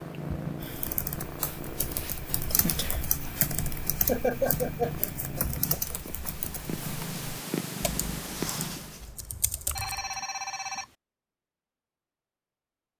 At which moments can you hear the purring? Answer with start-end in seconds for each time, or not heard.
0.0-9.1.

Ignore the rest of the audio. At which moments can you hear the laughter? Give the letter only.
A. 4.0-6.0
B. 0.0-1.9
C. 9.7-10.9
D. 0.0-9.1
A.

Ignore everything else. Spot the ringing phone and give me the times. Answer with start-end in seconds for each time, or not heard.
9.7-10.9.